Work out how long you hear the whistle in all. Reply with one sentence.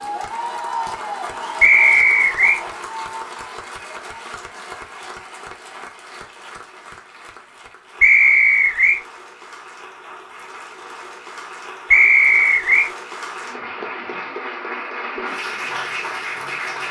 The whistle can be heard for 3 seconds in total.